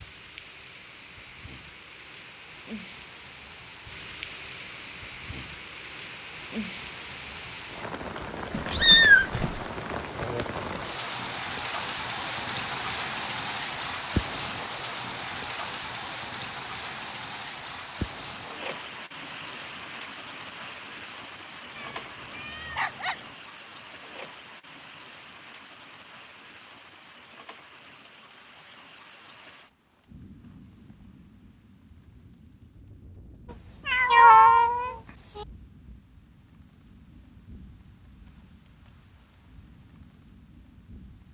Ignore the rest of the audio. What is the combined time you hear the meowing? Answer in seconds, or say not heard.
4 s.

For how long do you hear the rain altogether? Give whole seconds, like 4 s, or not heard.
41 s.